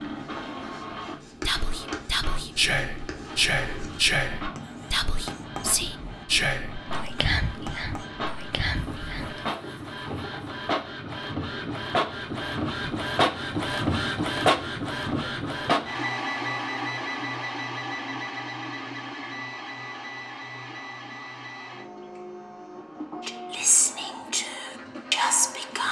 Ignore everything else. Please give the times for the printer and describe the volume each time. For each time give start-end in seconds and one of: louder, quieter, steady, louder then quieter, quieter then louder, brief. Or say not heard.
0.0-25.8 louder then quieter.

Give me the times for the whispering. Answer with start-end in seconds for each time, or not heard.
1.4-9.4, 23.2-25.8.